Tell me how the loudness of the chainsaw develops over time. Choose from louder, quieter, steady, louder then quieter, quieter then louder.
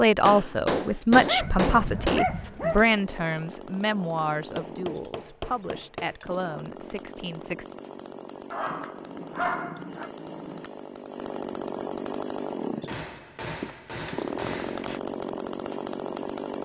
louder.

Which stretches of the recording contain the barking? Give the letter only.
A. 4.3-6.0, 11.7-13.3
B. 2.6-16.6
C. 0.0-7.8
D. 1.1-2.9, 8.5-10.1
D.